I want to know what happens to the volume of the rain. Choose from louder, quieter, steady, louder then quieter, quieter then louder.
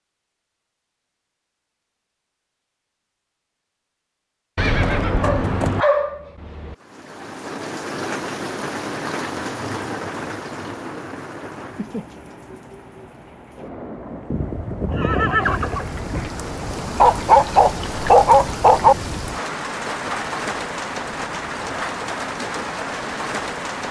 quieter then louder.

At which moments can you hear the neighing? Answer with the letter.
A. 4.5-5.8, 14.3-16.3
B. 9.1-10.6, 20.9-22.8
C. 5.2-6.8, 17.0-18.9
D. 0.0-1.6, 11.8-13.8
A.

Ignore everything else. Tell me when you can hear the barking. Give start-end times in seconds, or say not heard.
5.2-6.8, 17.0-18.9.